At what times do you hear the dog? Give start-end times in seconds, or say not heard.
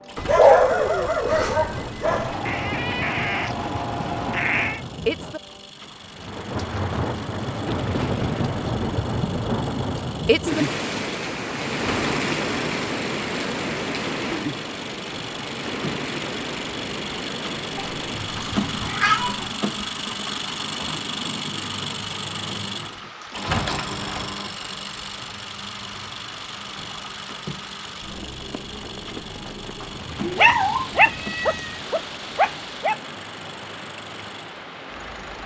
0.1-2.4, 30.4-33.0.